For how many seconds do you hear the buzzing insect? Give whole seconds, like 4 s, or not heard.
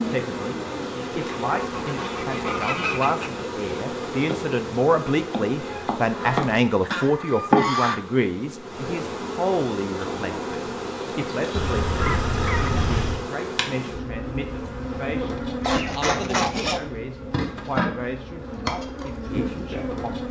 20 s.